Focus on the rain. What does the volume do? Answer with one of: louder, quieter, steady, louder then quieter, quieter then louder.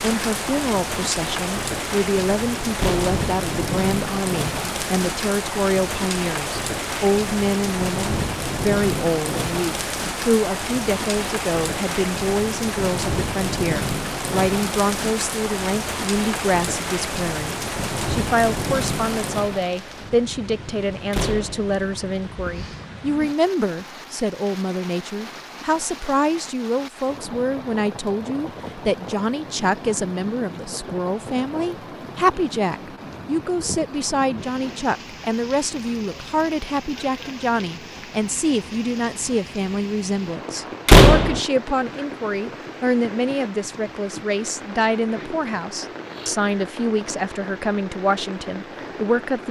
quieter.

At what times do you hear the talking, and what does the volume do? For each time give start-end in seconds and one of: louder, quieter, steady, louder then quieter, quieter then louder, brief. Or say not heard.
0.0-49.4 steady.